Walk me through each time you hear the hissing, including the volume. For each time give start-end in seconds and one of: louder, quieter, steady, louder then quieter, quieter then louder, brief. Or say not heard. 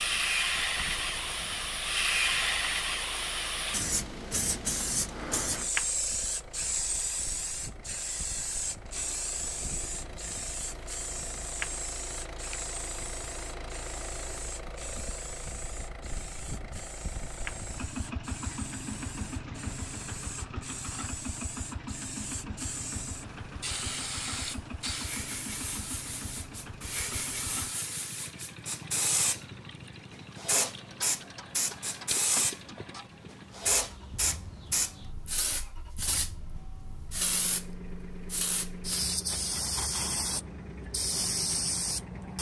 0.0-42.3 quieter then louder.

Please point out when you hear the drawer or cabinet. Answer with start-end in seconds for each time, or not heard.
not heard.